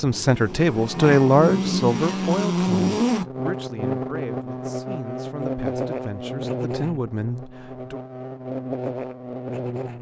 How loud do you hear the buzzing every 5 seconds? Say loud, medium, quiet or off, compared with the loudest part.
loud, medium.